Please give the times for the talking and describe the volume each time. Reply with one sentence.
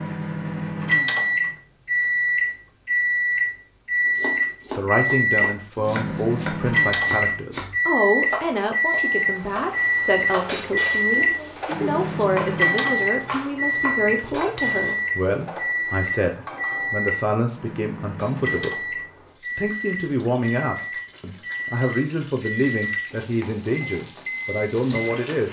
The talking can be heard from 4.7 to 25.4 s, at a steady volume.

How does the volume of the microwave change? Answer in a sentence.
The loudness of the microwave goes down.